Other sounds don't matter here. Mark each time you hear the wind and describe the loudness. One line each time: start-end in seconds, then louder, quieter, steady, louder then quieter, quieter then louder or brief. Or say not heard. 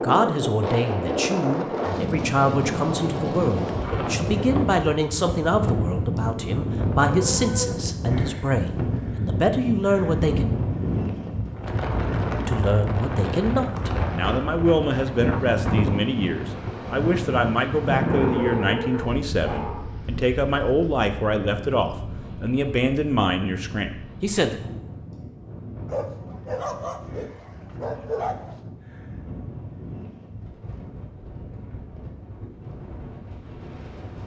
0.0-34.2 quieter.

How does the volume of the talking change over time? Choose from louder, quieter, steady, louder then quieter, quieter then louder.
steady.